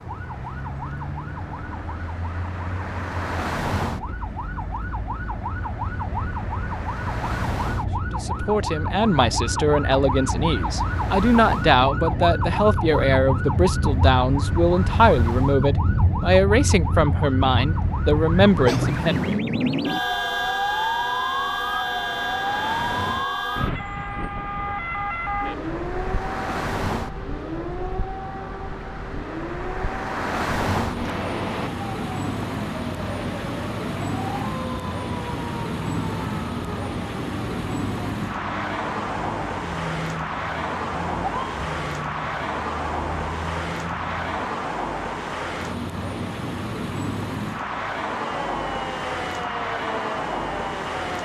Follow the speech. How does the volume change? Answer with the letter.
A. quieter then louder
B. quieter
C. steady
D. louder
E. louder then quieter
C.